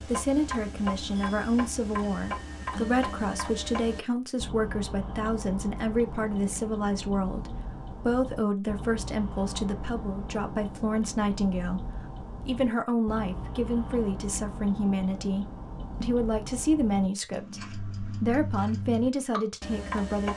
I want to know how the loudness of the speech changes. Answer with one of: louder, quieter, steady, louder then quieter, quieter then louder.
steady.